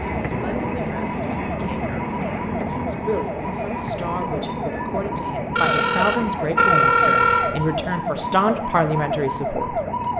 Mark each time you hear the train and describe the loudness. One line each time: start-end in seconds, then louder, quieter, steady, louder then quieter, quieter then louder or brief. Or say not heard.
0.0-10.1 quieter.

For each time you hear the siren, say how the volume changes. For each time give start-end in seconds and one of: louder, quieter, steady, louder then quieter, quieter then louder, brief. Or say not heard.
0.0-10.1 louder.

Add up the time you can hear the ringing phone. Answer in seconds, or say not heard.
2 s.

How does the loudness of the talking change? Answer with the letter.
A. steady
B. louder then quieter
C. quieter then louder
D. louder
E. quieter
D.